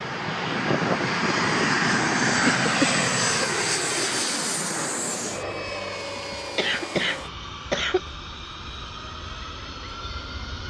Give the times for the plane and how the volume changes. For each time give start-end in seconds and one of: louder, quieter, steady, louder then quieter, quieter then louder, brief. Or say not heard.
0.0-10.6 quieter.